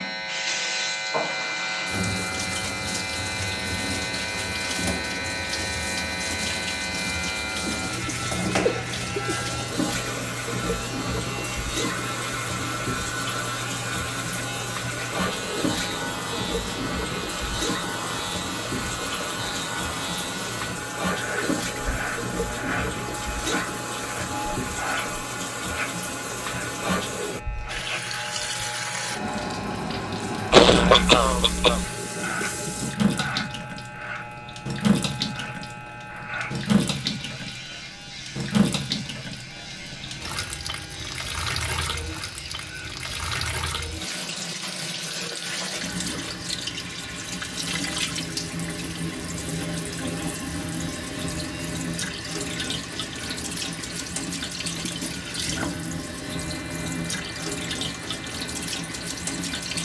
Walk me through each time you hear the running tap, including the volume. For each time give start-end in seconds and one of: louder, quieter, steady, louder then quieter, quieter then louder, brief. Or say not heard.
0.0-59.7 steady.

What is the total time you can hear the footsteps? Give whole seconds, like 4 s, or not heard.
not heard.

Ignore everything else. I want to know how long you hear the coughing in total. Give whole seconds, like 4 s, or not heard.
3 s.